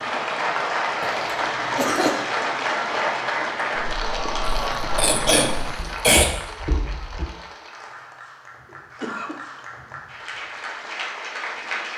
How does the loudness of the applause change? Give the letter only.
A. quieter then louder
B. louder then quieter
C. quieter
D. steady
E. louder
A.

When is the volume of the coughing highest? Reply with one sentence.
The volume of the coughing peaks at 6 seconds.